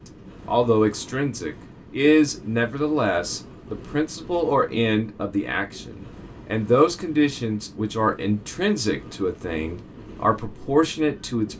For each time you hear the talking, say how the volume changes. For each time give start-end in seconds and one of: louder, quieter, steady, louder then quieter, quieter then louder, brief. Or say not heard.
0.5-11.5 steady.